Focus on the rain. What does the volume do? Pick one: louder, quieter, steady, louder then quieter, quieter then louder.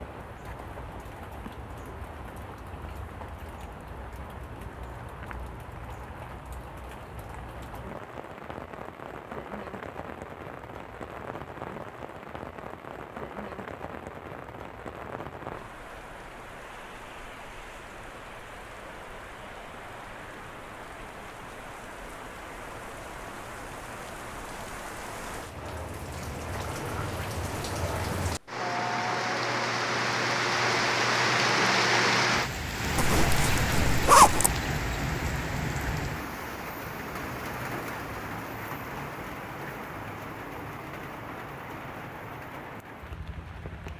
louder then quieter.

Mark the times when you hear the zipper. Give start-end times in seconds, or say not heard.
33.0-34.5.